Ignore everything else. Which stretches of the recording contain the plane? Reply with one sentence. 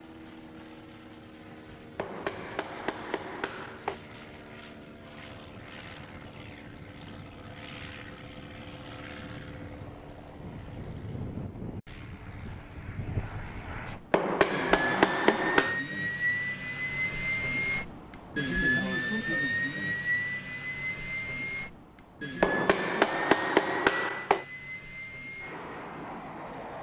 The plane can be heard from 0.0 to 26.7 s.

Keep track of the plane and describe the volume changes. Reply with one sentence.
The volume of the plane goes up, then down.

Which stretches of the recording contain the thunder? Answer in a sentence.
You can't hear the thunder here.